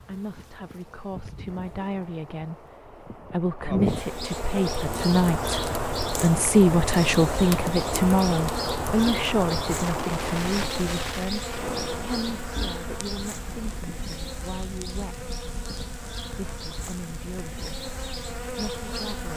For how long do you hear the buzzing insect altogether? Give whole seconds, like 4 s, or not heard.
19 s.